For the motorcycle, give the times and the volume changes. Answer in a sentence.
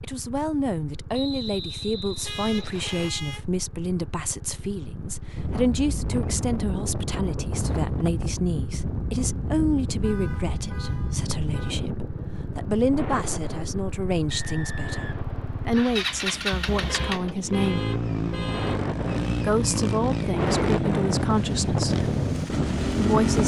You can hear the motorcycle from 0.0 to 23.4 s, getting louder.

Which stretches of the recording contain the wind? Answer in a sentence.
You can hear the wind from 5.3 to 23.4 s.